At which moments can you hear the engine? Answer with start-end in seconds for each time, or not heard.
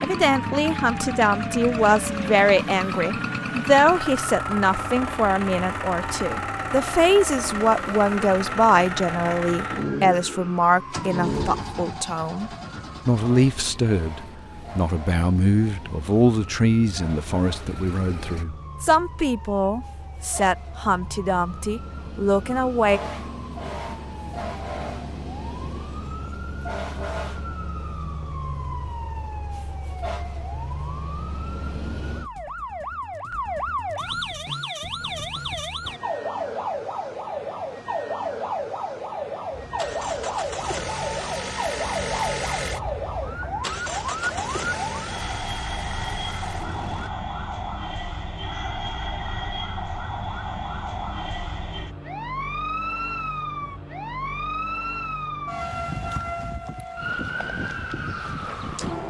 0.0-18.4, 39.5-47.1.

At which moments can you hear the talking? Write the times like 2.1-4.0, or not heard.
0.0-23.0.